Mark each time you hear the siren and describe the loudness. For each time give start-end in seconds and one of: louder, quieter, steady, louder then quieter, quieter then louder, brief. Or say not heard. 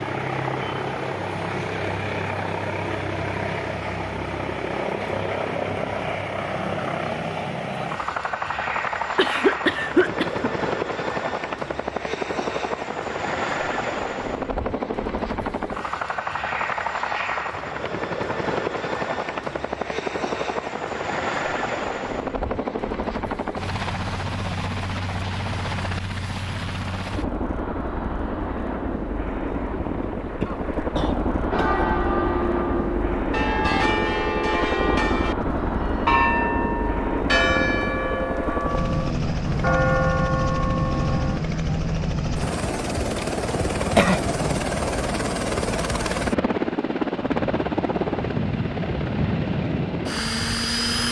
not heard.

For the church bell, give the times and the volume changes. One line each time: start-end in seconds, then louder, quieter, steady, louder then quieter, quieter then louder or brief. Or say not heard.
31.5-41.4 steady.